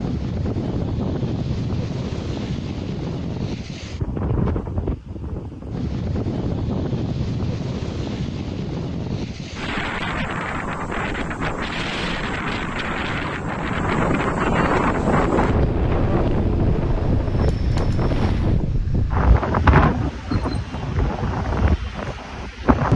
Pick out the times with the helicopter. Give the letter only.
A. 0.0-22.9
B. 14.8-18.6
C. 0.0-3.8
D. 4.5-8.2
B.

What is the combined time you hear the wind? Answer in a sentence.
The wind can be heard for 23 seconds in total.